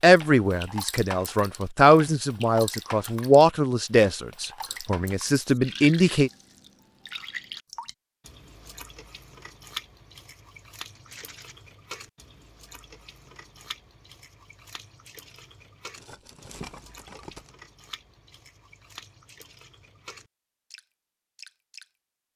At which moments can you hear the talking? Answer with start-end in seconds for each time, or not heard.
0.0-6.3.